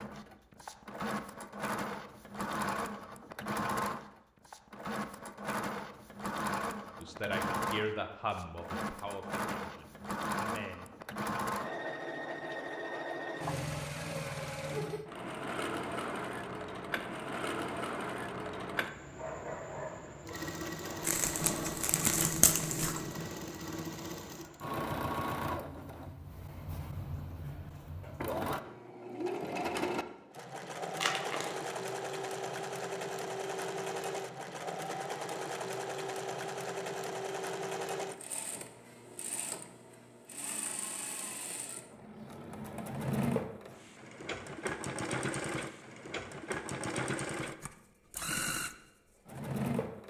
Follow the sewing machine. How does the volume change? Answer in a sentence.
The volume of the sewing machine stays about the same.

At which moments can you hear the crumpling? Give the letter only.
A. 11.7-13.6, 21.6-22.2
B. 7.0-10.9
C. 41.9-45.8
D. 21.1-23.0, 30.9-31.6
D.